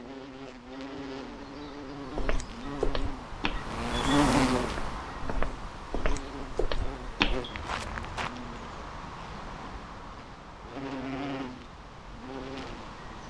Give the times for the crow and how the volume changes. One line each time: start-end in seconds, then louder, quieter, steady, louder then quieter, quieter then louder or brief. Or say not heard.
not heard.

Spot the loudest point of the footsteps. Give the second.
7 s.